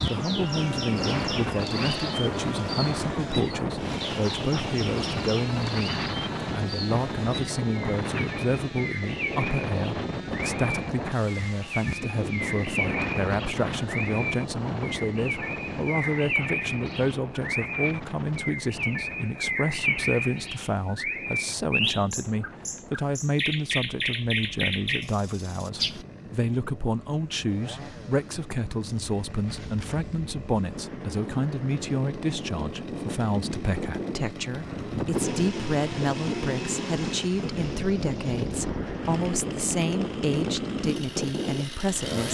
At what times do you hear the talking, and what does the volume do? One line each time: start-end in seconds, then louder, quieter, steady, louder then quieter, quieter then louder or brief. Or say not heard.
0.1-42.3 steady.